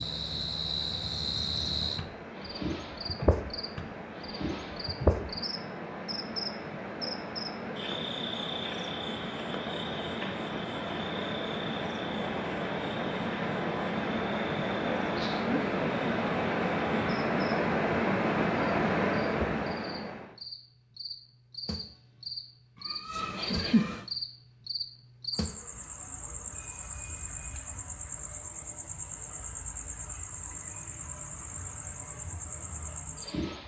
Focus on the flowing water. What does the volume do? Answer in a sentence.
The loudness of the flowing water goes up.